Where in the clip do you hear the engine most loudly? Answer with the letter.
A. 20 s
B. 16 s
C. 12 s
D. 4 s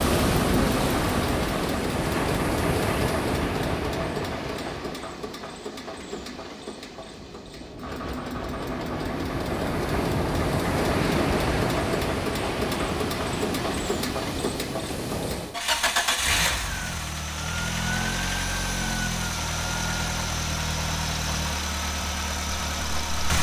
B.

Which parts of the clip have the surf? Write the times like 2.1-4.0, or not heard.
0.0-15.6.